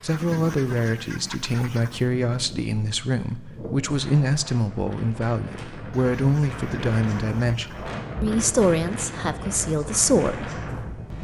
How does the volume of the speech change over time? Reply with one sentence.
The volume of the speech stays about the same.